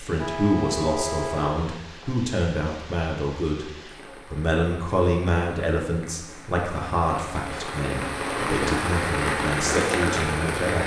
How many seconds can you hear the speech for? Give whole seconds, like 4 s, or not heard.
10 s.